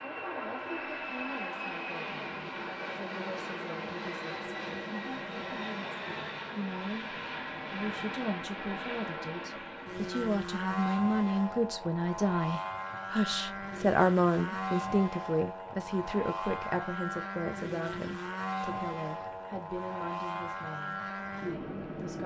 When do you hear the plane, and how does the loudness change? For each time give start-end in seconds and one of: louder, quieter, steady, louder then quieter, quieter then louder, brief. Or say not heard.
0.0-22.2 steady.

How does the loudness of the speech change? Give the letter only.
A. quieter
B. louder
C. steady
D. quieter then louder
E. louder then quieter
E.